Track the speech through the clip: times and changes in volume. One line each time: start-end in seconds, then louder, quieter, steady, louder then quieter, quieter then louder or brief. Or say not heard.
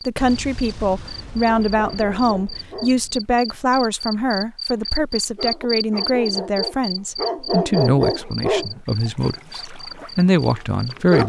0.1-11.2 steady.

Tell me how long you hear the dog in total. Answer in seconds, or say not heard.
10 s.